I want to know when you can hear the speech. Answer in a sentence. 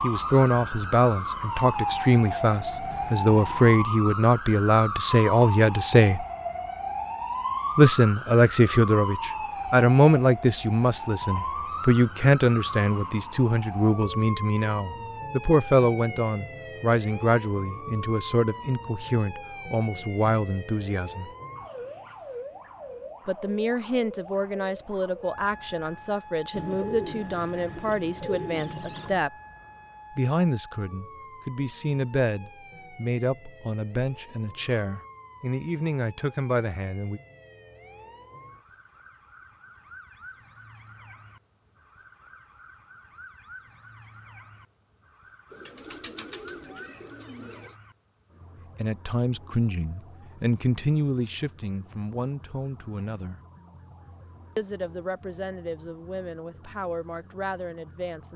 You can hear the speech from 0.0 to 6.2 s, from 7.8 to 21.3 s, from 23.2 to 29.3 s, from 30.1 to 37.2 s, from 48.8 to 53.4 s and from 54.5 to 58.3 s.